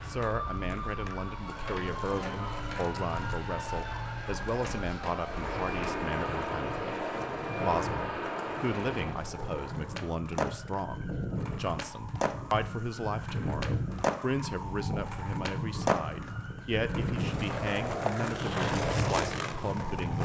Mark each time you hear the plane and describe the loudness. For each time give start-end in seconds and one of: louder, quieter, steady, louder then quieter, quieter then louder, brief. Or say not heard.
5.2-9.2 steady.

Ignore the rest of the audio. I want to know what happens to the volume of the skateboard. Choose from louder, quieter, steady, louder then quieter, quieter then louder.
louder.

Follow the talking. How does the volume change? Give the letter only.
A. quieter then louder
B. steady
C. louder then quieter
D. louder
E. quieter
B.